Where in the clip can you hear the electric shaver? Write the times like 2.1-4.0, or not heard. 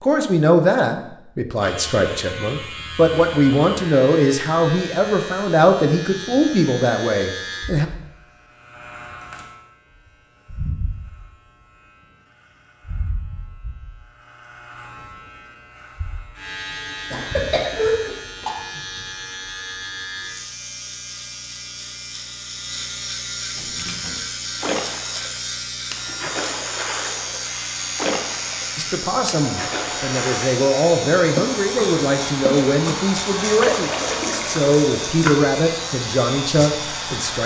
1.6-37.4.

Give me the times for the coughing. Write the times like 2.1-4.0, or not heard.
17.1-18.5.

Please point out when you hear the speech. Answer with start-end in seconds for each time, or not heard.
0.0-7.8, 28.8-37.4.